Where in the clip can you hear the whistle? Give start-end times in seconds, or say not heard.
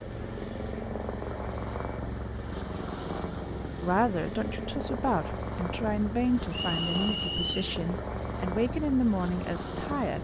6.5-7.6.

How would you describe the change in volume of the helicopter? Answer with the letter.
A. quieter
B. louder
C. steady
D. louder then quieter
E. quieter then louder
C.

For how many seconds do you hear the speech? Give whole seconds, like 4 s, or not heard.
6 s.